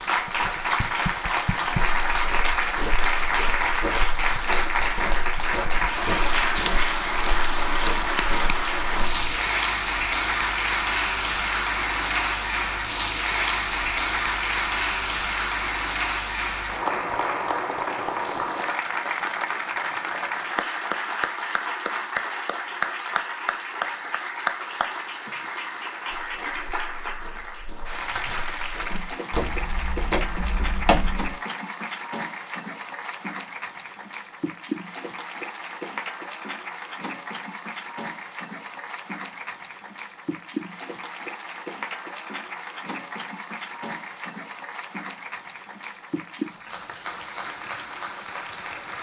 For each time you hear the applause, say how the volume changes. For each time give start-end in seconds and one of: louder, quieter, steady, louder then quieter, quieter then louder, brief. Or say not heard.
0.0-48.9 quieter.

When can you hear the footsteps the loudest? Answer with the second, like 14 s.
31 s.